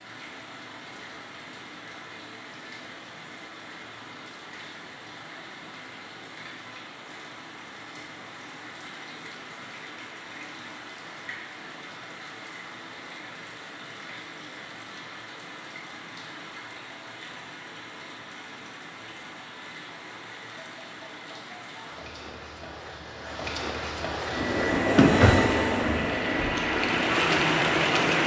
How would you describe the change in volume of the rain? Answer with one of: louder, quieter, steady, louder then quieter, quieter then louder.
louder.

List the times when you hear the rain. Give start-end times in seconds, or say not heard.
0.0-28.2.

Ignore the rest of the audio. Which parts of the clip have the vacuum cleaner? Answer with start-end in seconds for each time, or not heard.
24.3-28.2.